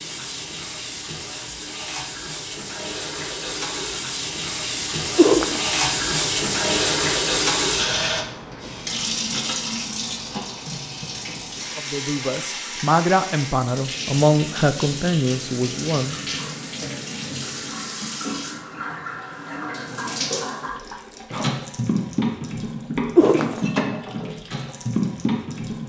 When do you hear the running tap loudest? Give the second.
7 s.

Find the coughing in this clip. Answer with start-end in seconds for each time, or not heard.
5.2-5.7, 23.1-23.8.